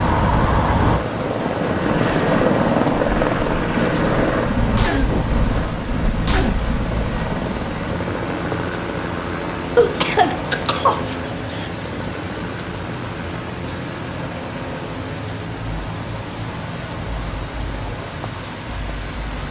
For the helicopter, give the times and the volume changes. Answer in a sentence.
The helicopter can be heard from 0.0 to 19.4 s, getting quieter.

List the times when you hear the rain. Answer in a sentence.
You can hear the rain from 0.0 to 19.4 s.